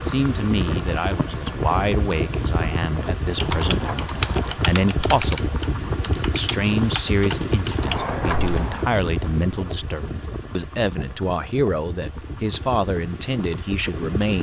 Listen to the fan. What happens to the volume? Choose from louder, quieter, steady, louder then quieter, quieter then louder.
quieter.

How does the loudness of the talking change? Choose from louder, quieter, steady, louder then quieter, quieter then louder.
steady.